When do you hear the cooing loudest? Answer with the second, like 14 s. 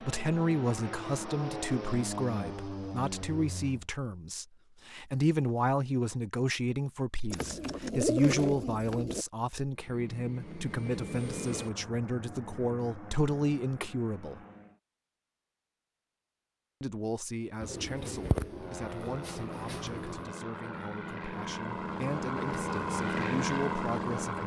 8 s.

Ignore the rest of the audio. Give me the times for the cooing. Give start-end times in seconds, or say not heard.
7.3-9.2, 17.6-20.3.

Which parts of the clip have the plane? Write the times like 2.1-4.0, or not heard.
0.0-3.9, 9.8-14.8, 18.4-24.4.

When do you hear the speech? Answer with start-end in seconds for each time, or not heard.
0.0-14.4, 16.8-24.4.